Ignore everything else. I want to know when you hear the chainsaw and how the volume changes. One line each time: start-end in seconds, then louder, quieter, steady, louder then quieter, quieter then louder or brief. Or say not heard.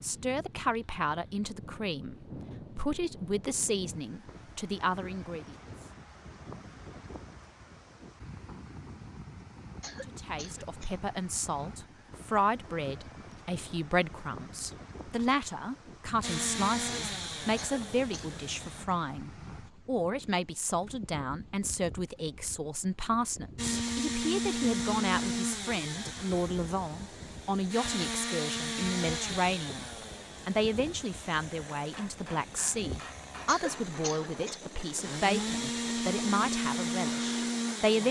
16.2-18.9 brief
23.6-38.0 quieter then louder.